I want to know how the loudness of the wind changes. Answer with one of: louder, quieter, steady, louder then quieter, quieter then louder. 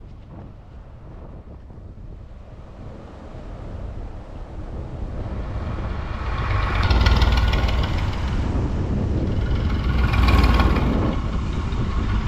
louder.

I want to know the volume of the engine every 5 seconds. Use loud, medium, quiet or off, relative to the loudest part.
off, loud, loud.